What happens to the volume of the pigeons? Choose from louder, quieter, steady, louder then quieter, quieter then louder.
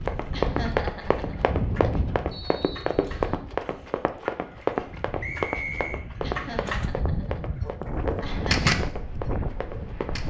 louder.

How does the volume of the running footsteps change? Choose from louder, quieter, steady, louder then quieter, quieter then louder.
quieter.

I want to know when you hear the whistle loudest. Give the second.
6 s.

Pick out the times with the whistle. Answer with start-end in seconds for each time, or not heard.
2.3-3.5, 5.2-6.0.